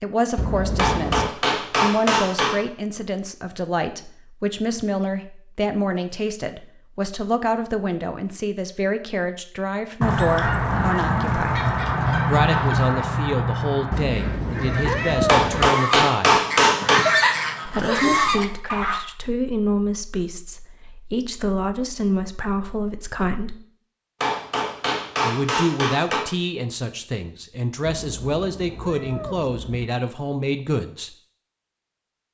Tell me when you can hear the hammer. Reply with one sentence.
The hammer can be heard from 0.8 to 2.6 s, from 15.2 to 17.1 s and from 24.2 to 26.2 s.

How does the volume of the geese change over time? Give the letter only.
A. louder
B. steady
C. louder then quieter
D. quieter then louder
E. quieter
D.